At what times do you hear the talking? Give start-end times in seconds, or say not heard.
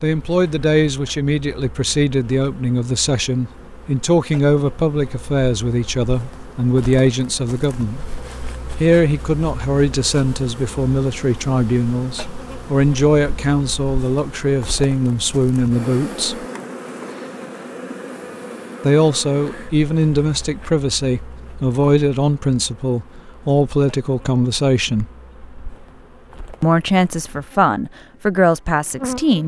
0.0-8.1, 8.8-16.4, 18.8-25.1, 26.6-29.4.